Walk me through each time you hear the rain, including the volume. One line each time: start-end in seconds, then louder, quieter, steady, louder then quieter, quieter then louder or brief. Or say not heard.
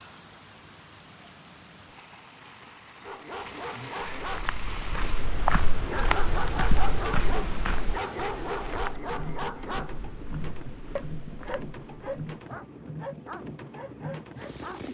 0.0-14.8 louder.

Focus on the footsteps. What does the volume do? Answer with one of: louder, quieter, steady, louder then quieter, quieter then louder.
quieter.